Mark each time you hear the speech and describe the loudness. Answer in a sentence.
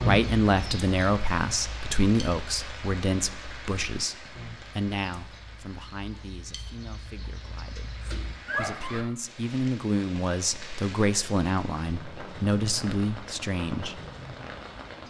The speech can be heard from 0.0 to 14.0 s, getting quieter then louder.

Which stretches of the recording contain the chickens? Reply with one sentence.
The chickens can be heard from 0.0 to 9.1 s.